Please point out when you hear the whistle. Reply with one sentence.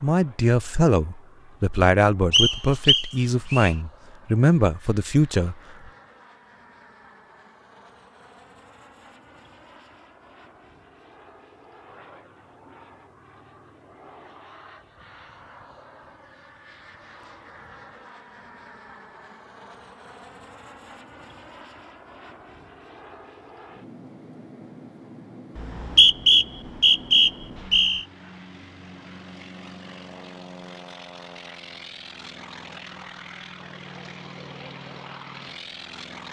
You can hear the whistle from 2.3 to 3.8 s and from 25.6 to 28.1 s.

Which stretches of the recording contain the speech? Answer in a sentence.
The speech can be heard from 0.0 to 5.5 s.